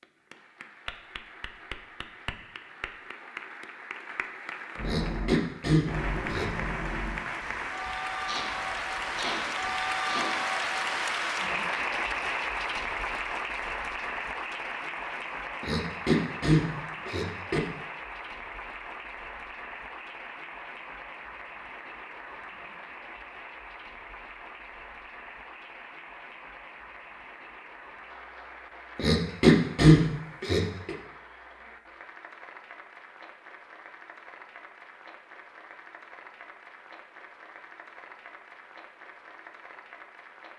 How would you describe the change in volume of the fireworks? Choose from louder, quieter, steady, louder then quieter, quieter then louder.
quieter then louder.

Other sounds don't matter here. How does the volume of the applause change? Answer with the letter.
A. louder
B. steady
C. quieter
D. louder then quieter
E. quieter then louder
D.